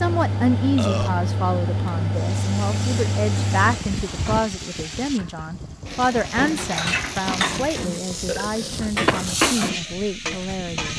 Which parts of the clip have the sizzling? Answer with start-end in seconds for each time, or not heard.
2.1-10.9.